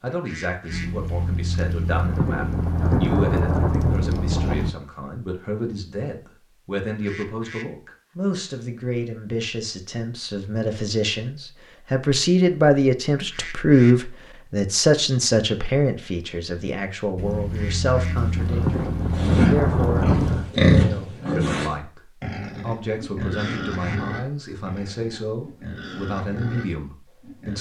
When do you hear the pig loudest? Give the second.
21 s.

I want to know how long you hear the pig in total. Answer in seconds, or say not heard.
9 s.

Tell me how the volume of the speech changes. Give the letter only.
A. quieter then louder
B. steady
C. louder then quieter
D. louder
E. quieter
C.